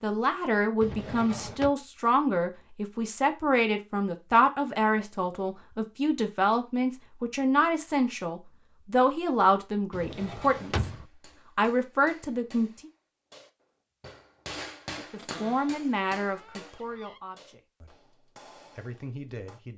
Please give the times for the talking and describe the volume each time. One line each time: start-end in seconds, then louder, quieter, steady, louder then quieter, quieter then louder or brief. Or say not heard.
0.0-10.9 steady
11.6-12.9 brief
15.1-19.7 quieter then louder.